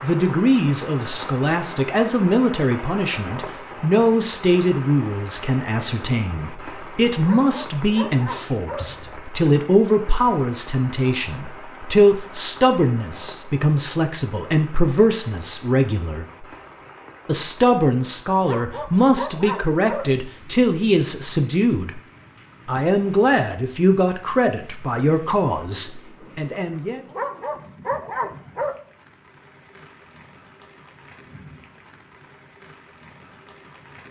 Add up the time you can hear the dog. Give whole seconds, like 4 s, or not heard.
5 s.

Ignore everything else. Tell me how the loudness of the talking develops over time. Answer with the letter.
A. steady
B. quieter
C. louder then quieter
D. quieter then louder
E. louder
A.